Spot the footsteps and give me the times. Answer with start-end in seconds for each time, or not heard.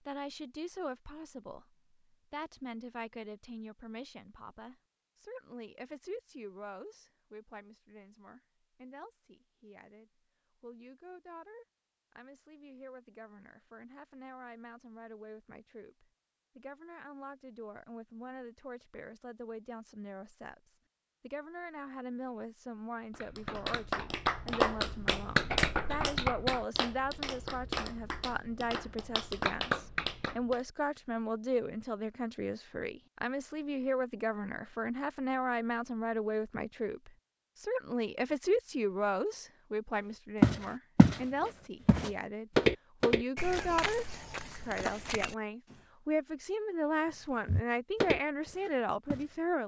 40.4-41.2, 41.9-45.8, 47.5-49.6.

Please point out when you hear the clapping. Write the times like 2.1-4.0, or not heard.
23.1-30.6.